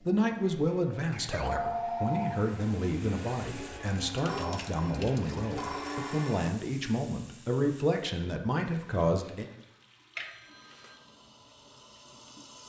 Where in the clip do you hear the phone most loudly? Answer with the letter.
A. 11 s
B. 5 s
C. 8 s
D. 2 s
D.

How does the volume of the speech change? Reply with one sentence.
The volume of the speech stays about the same.